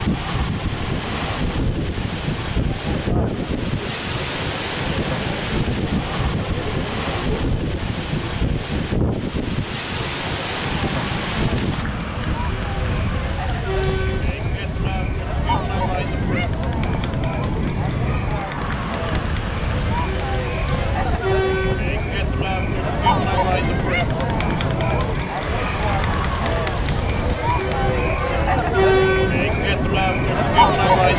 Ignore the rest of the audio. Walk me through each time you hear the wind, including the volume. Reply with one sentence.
The wind can be heard from 0.0 to 31.1 s, at a steady volume.